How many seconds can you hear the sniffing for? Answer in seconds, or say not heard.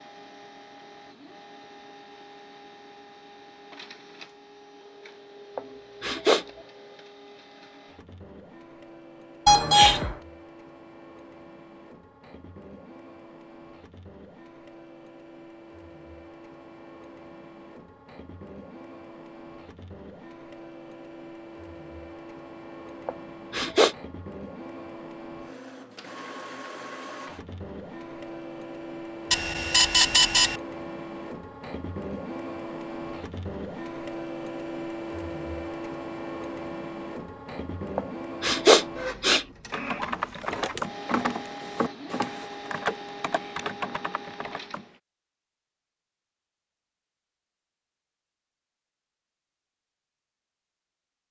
3 s.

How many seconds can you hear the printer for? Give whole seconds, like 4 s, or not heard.
45 s.